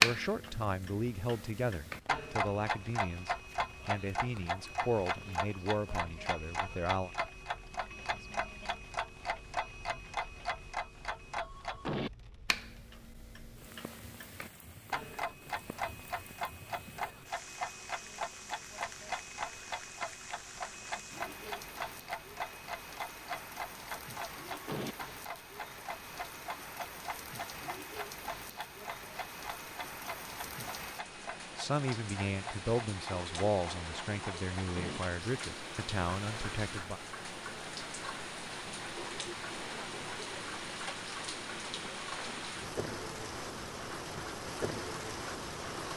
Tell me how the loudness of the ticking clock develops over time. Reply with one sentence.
The loudness of the ticking clock goes down.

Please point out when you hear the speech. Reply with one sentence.
You can hear the speech from 0.0 to 7.1 s and from 31.6 to 37.0 s.